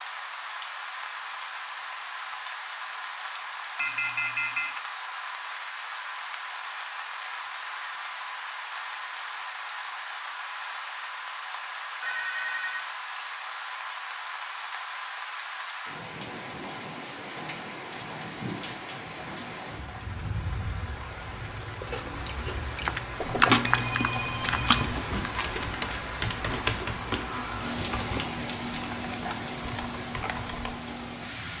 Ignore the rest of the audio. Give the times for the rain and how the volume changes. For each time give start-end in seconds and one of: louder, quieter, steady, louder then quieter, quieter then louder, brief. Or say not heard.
0.0-31.5 steady.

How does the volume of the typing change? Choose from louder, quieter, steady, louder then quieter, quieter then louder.
quieter.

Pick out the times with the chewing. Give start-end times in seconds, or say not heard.
21.6-28.2.